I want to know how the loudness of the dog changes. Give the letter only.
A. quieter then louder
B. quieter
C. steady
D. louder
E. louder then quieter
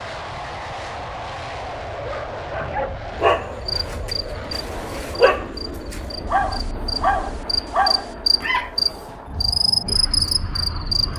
A.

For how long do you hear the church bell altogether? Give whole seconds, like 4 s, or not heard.
not heard.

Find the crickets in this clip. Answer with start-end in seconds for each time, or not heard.
3.6-11.1.